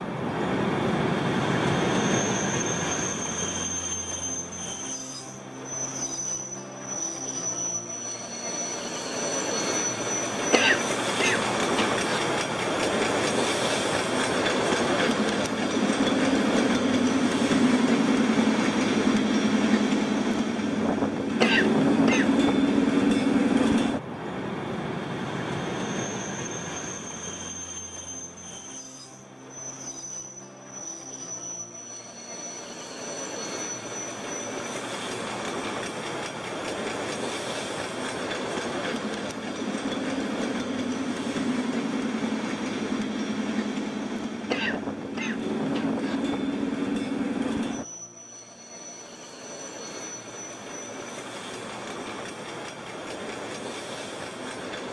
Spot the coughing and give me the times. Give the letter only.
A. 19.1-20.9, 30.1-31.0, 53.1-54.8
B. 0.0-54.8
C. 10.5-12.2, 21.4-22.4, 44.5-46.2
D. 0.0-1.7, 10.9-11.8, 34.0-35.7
C.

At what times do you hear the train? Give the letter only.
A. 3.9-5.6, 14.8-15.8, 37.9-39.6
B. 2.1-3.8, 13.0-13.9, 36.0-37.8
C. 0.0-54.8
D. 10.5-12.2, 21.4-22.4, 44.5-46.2
C.